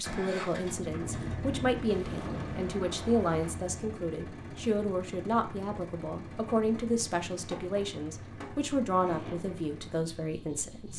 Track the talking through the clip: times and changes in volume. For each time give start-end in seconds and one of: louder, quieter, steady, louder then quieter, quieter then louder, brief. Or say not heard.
0.0-10.9 steady.